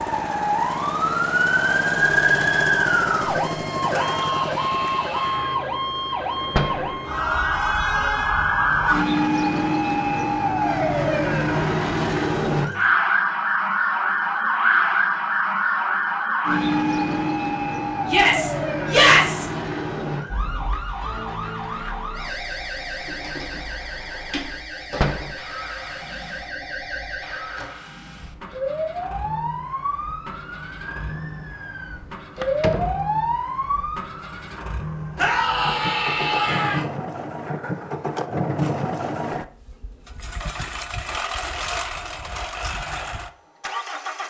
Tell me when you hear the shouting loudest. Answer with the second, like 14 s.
19 s.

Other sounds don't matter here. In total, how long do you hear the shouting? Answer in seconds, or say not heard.
5 s.